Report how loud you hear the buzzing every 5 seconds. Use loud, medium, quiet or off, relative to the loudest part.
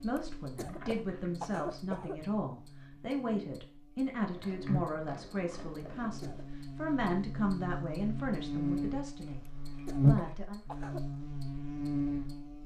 quiet, medium, loud.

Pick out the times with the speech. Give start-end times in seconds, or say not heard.
0.0-10.6.